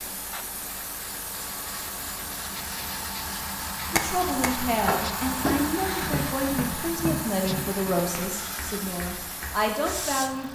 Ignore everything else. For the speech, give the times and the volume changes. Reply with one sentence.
The speech can be heard from 3.9 to 10.5 s, at a steady volume.